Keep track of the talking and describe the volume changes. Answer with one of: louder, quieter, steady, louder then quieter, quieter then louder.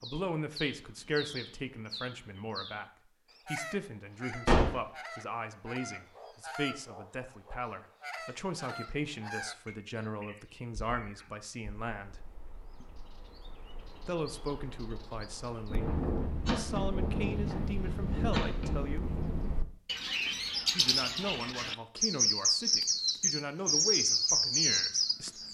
steady.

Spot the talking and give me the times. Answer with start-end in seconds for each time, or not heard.
0.0-12.2, 14.1-19.1, 20.8-25.4.